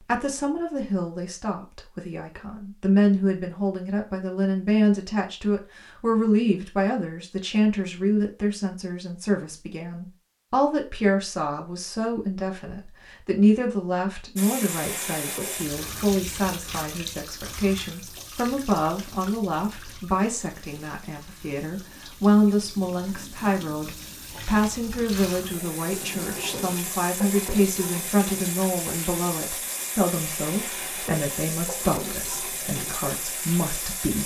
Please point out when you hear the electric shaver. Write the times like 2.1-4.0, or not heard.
not heard.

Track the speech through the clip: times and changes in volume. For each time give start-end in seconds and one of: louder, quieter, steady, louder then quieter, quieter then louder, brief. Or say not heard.
0.1-34.2 steady.